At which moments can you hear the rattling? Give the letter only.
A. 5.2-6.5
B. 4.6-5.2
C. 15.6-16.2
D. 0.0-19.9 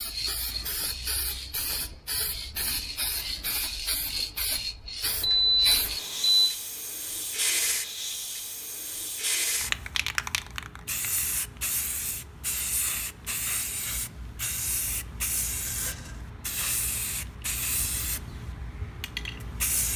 C.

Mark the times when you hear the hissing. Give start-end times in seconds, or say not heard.
0.0-19.9.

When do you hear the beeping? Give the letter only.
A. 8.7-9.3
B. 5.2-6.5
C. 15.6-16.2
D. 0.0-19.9
B.